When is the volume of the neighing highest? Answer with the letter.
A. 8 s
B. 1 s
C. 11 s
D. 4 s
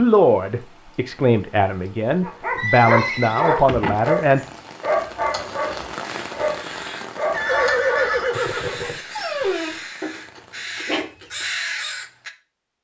A.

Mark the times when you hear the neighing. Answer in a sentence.
The neighing can be heard from 2.5 to 4.0 s and from 7.3 to 9.1 s.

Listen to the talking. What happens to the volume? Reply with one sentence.
The loudness of the talking goes up.